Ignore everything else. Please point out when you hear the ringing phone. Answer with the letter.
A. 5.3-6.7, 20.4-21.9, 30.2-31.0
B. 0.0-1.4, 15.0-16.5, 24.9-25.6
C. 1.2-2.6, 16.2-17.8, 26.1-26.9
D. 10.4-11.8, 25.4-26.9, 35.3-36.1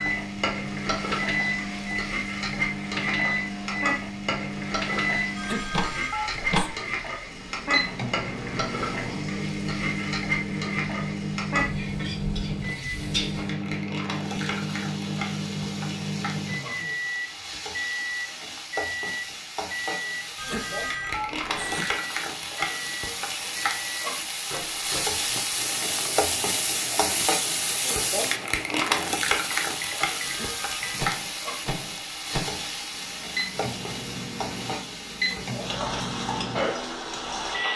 A.